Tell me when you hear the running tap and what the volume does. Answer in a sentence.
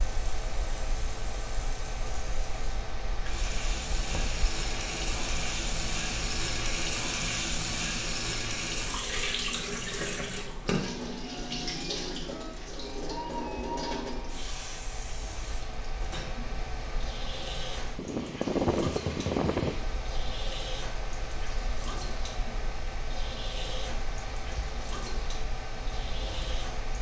You can hear the running tap from 0.0 to 26.9 s, getting louder then quieter.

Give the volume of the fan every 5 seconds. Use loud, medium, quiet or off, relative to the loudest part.
medium, medium, quiet, loud, medium, medium.